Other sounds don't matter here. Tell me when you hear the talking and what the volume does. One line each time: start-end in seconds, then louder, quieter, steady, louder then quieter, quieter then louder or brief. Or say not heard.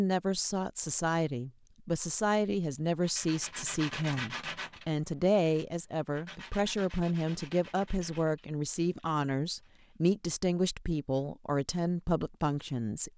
0.0-13.1 steady.